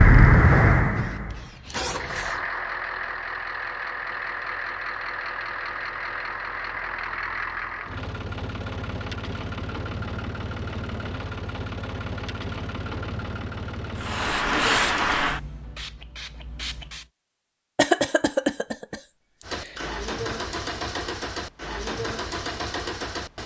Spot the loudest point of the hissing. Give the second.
15 s.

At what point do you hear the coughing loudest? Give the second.
18 s.